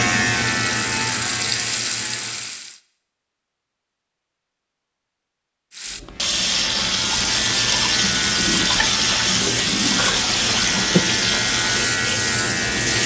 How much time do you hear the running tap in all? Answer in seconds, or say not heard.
10 s.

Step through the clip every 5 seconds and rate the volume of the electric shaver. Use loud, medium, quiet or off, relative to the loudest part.
loud, medium, loud.